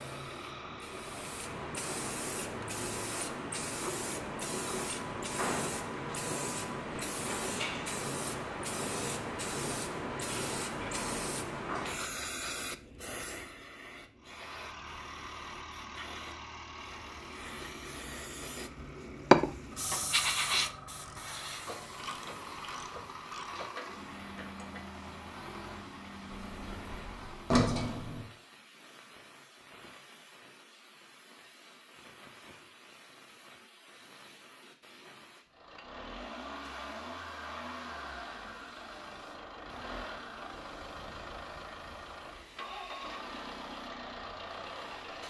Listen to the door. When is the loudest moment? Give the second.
28 s.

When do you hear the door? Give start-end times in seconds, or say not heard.
26.3-28.3.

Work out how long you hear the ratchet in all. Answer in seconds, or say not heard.
5 s.